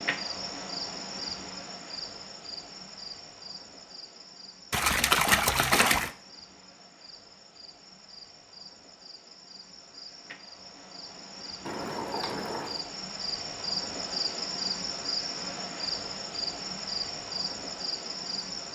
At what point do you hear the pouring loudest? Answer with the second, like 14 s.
5 s.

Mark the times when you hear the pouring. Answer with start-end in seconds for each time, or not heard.
4.7-6.1, 11.7-12.8.